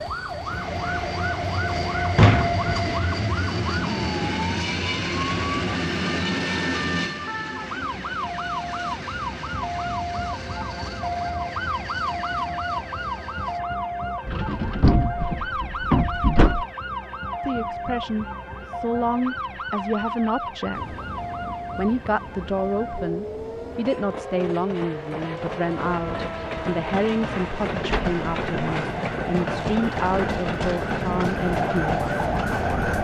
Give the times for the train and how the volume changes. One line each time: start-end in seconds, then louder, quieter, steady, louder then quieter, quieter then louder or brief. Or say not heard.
0.0-13.6 quieter
20.7-33.0 louder.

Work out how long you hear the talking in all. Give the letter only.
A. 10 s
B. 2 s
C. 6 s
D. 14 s
D.